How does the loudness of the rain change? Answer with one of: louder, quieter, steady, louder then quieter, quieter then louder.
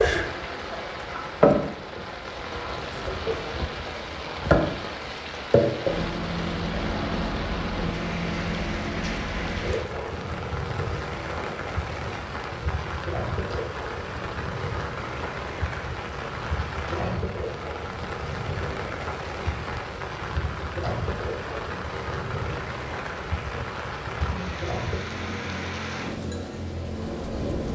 steady.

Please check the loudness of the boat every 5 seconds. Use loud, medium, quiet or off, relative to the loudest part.
loud, loud, medium, medium, medium, medium.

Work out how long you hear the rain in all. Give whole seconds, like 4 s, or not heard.
28 s.